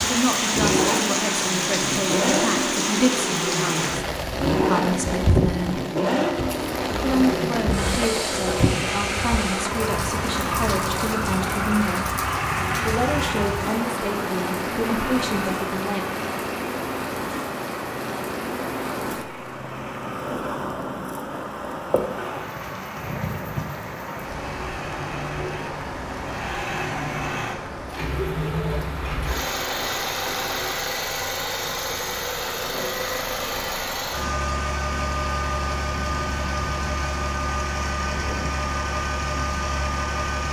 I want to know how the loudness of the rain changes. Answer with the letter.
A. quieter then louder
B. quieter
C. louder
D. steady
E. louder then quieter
B.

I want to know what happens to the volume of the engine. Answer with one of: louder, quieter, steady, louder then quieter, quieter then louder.
quieter then louder.